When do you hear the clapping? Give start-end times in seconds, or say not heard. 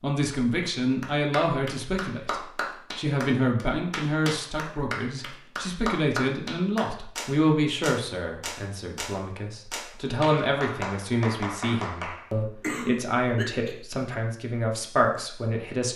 1.0-12.3.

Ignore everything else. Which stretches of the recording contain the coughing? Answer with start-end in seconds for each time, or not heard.
12.6-13.8.